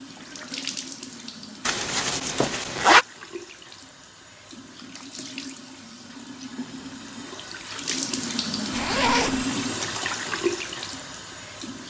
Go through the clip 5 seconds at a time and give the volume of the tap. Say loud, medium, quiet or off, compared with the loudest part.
medium, loud, loud.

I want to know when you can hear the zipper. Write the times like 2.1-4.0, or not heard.
1.6-3.0, 8.7-9.4.